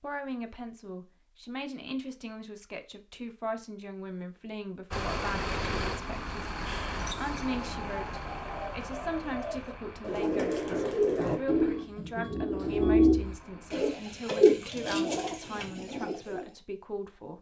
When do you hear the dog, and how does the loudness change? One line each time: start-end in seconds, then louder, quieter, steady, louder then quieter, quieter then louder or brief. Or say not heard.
not heard.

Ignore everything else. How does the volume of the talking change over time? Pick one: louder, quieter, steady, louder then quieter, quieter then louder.
steady.